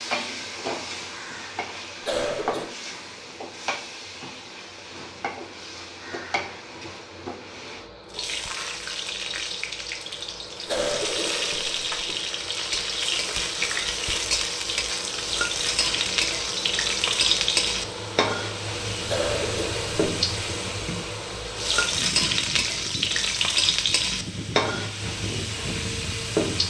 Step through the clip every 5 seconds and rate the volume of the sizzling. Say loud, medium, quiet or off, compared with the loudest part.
medium, medium, loud, loud, loud, loud.